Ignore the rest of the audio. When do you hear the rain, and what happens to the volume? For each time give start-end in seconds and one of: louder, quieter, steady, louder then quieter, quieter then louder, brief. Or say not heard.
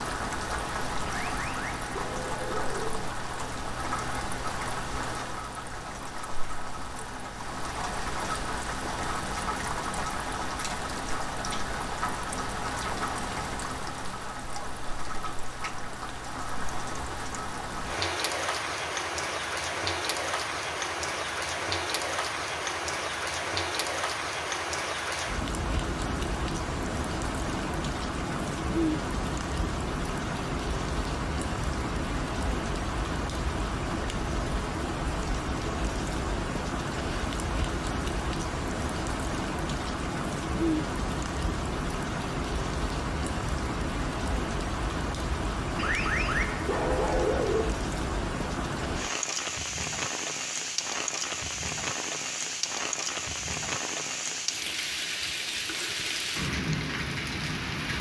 0.0-57.9 steady.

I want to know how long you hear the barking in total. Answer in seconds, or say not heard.
4 s.